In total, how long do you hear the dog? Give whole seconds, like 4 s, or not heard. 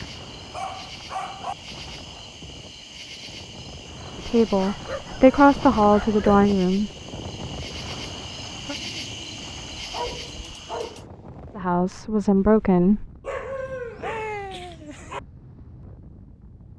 6 s.